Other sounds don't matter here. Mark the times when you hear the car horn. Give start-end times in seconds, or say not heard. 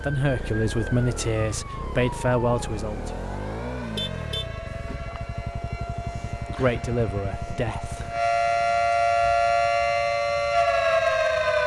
3.8-5.0.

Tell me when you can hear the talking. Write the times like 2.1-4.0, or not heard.
0.0-3.2, 6.5-8.1.